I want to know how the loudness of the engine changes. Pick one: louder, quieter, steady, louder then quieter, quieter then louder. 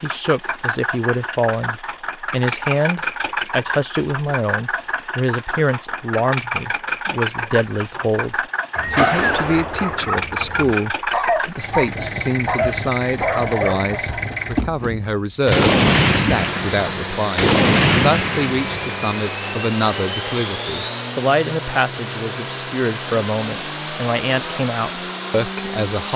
steady.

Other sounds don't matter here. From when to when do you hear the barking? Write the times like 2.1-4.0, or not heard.
8.8-14.2.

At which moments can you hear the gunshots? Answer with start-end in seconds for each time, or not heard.
8.9-10.1, 15.5-19.0.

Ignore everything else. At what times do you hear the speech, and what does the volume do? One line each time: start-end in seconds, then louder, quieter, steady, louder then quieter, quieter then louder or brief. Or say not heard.
0.0-26.1 steady.